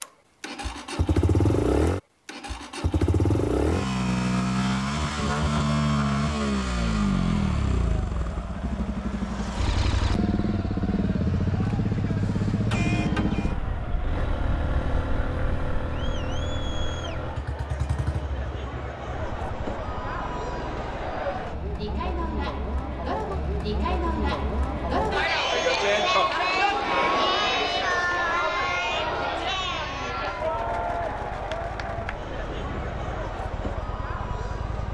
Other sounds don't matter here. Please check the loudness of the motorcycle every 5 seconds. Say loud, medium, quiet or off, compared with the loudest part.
loud, loud, loud, medium, quiet, quiet, quiet.